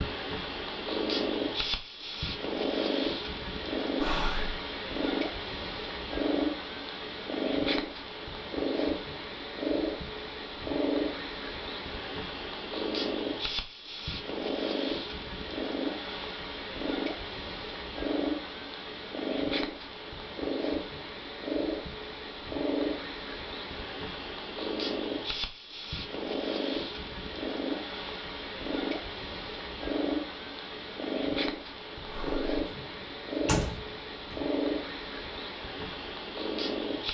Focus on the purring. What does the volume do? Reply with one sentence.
The loudness of the purring stays about the same.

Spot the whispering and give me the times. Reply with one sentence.
You can hear the whispering from 4.0 to 4.5 s and from 32.0 to 32.6 s.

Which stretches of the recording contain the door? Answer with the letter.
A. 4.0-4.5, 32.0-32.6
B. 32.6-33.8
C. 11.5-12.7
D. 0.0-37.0
B.